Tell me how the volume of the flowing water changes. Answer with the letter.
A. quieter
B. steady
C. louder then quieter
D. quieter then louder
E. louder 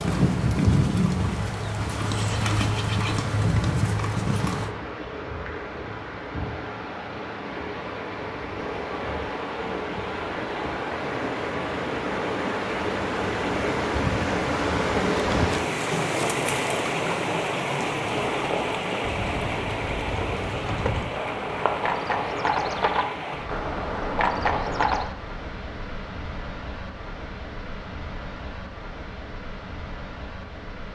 C.